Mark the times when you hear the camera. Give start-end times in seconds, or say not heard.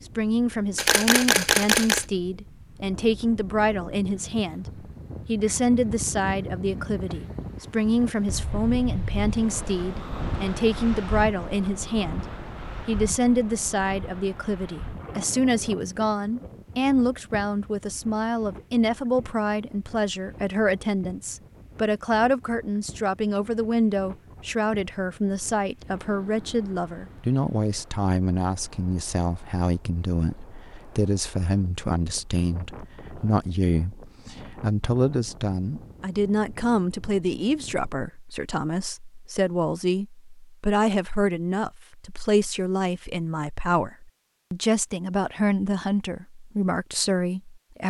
0.8-2.0.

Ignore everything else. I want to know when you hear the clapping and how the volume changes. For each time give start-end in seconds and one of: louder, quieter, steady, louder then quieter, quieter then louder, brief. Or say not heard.
not heard.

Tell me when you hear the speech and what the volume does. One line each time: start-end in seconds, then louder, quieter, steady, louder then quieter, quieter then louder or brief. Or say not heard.
0.1-47.8 steady.